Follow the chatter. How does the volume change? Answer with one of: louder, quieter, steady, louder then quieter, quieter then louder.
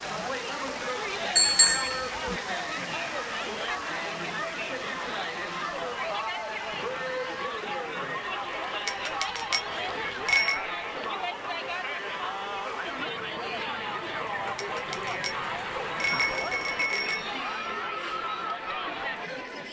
steady.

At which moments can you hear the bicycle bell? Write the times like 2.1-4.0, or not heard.
1.4-2.4, 8.8-10.6, 14.6-17.2.